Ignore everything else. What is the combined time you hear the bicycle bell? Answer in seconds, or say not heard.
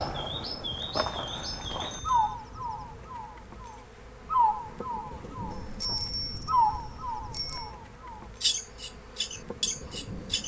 4 s.